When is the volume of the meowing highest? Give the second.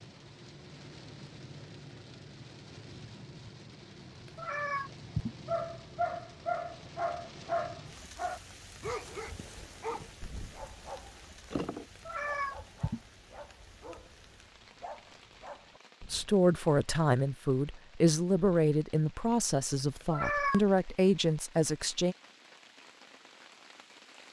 20 s.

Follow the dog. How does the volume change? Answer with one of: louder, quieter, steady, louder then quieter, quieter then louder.
quieter.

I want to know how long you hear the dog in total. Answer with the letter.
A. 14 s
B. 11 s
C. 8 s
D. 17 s
B.